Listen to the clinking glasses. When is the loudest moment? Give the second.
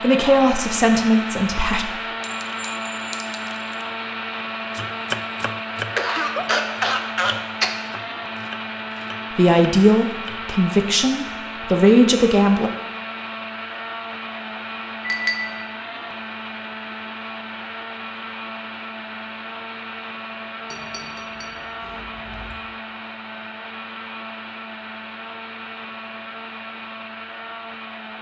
15 s.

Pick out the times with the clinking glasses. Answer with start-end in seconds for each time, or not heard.
2.2-3.9, 15.0-15.8, 20.6-22.6.